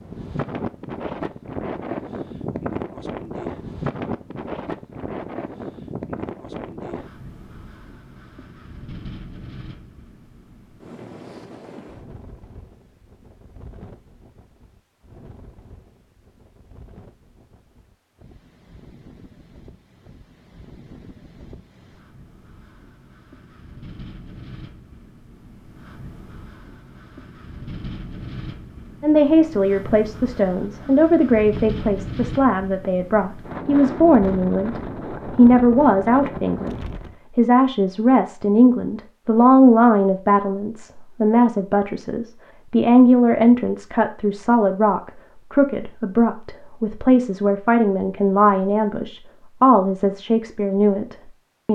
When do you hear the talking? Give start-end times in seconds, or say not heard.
29.0-51.6.